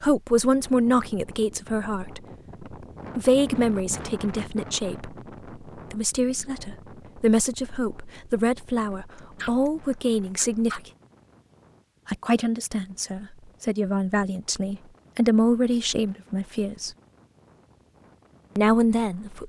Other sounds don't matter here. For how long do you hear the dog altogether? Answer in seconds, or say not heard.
2 s.